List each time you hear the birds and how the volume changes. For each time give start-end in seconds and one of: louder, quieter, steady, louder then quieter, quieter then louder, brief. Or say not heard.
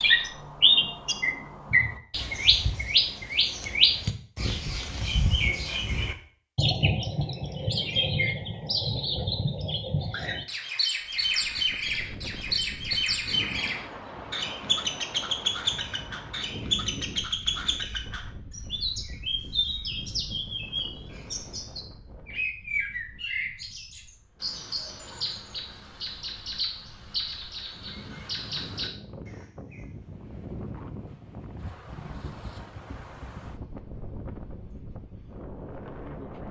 0.0-29.9 quieter.